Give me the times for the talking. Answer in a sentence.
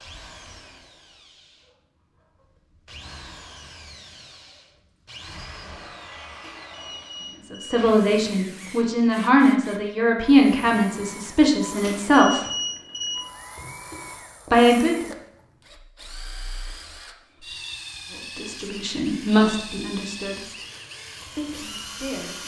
You can hear the talking from 7.5 to 12.4 s, from 14.4 to 15.1 s, from 18.4 to 20.5 s and from 21.4 to 22.4 s.